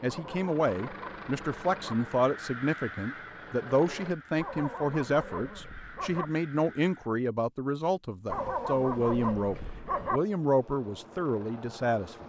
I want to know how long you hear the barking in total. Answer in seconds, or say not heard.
6 s.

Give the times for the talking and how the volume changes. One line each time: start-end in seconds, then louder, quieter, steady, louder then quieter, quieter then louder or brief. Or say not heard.
0.0-12.2 steady.